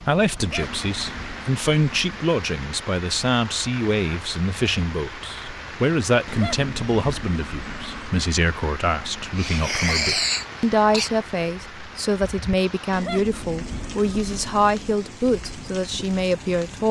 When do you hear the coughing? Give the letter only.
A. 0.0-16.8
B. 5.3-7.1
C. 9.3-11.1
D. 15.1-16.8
C.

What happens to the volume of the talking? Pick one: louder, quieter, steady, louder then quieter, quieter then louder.
steady.